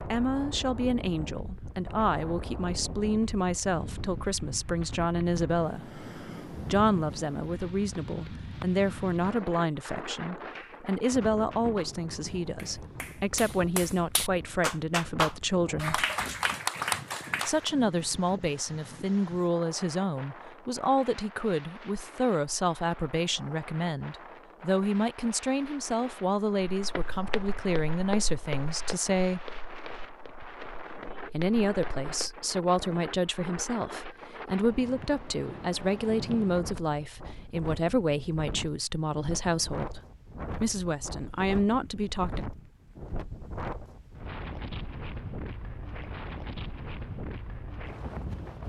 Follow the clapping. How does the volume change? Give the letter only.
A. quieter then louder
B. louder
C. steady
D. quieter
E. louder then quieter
B.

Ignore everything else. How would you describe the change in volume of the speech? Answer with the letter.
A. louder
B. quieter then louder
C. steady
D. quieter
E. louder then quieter
C.